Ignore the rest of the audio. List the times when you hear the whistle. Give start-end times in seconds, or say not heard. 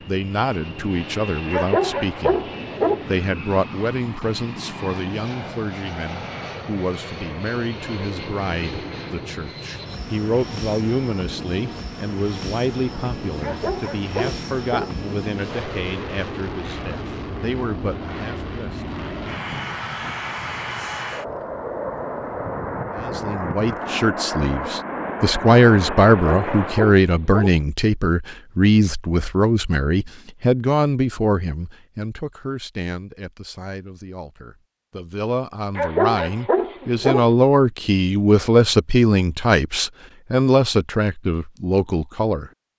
not heard.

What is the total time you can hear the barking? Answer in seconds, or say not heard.
6 s.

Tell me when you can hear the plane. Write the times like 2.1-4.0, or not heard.
0.0-26.9.